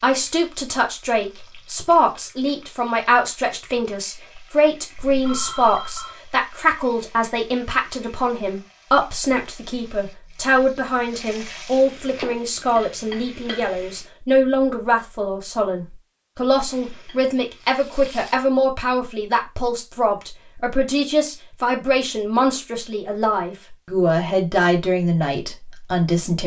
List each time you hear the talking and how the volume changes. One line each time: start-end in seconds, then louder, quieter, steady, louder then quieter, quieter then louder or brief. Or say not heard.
0.0-26.4 steady.